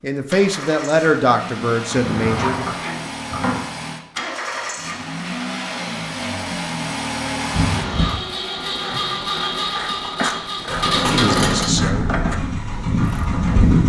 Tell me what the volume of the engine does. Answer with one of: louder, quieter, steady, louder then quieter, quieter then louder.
louder.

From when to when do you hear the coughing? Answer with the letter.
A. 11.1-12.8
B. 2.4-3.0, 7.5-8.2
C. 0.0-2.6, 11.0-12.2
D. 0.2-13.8
B.